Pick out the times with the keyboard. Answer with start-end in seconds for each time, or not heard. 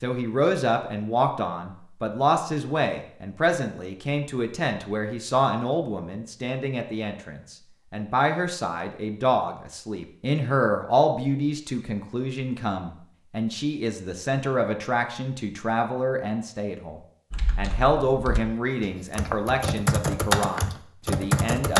17.3-21.7.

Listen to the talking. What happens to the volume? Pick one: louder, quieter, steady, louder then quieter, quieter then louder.
steady.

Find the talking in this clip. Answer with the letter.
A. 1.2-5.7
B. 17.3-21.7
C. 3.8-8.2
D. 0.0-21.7
D.